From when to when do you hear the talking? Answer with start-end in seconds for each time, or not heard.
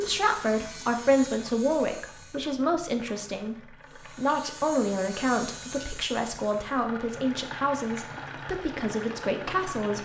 0.0-10.0.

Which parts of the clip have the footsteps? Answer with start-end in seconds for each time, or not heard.
not heard.